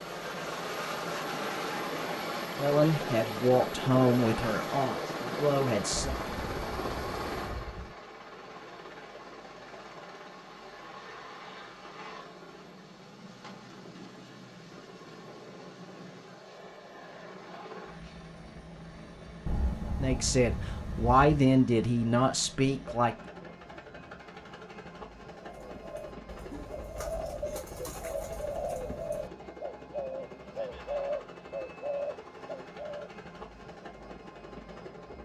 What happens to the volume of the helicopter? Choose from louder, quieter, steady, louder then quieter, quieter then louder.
quieter.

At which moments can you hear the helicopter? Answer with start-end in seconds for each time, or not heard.
0.0-35.2.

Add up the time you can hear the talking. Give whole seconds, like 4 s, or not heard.
7 s.